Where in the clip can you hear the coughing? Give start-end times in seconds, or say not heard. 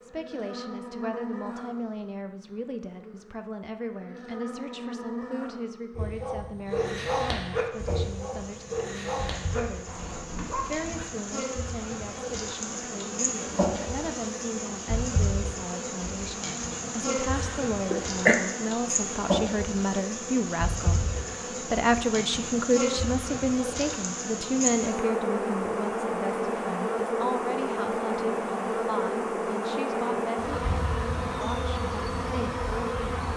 17.4-18.4.